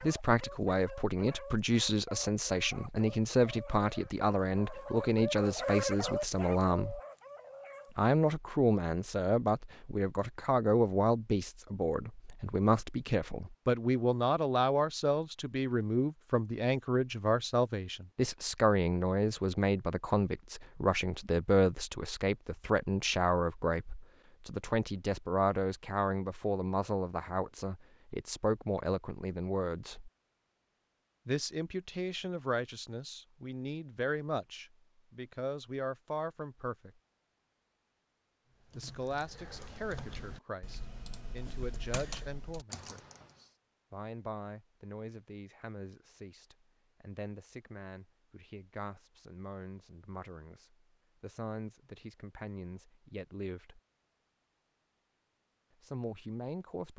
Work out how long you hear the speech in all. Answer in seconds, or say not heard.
50 s.